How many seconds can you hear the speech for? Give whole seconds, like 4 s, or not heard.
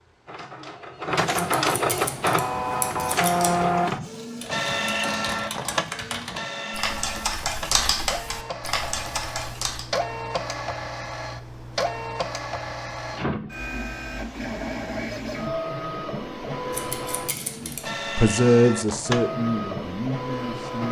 3 s.